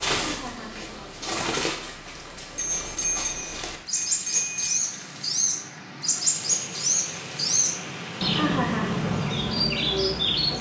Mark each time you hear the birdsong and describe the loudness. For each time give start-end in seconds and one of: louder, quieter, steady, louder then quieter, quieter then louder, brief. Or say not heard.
0.0-10.5 louder.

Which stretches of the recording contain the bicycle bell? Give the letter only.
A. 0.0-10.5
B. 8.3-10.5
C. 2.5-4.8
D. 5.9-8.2
C.